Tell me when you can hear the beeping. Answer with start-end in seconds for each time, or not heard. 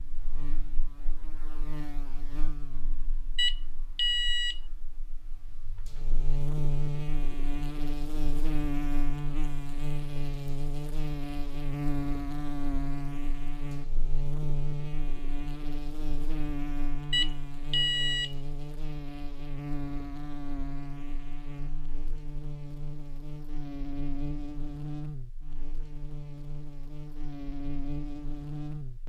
3.4-4.6, 17.1-18.4.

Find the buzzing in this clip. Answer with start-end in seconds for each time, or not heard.
0.0-29.0.